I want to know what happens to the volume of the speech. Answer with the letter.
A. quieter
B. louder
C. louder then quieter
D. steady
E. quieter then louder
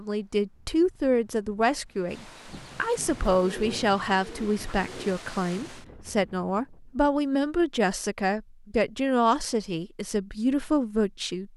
D.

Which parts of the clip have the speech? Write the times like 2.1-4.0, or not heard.
0.0-11.5.